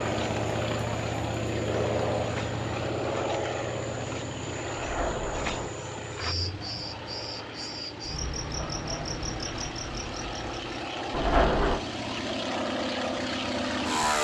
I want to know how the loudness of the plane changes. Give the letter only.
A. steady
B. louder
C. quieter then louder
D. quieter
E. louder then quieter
C.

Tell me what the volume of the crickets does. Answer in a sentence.
The loudness of the crickets goes up.